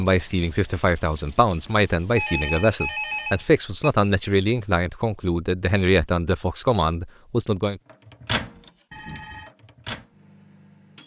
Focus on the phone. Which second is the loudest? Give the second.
3 s.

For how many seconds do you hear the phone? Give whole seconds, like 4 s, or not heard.
2 s.